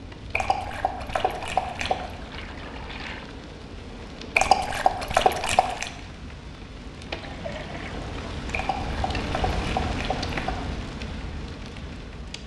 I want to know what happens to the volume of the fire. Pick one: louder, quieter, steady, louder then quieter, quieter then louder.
louder.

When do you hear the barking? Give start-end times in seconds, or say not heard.
0.3-2.1, 4.3-5.9, 8.5-10.6.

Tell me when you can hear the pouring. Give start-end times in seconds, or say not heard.
2.0-3.3, 7.0-8.3.